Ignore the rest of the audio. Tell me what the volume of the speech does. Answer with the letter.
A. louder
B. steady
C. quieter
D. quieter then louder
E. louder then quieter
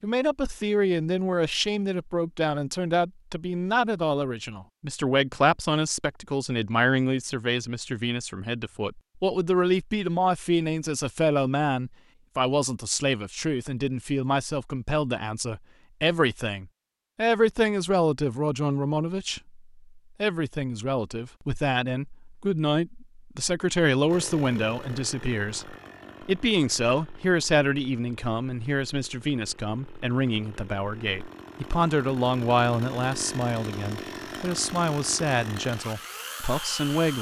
B.